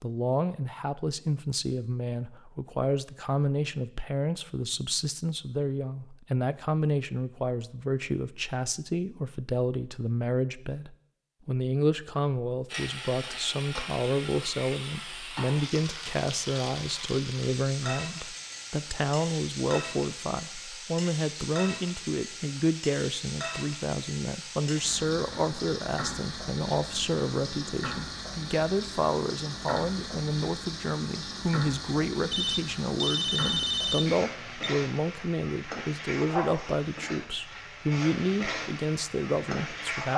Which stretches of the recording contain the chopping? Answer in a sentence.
You can't hear the chopping here.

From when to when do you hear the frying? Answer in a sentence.
The frying can be heard from 12.7 to 40.1 s.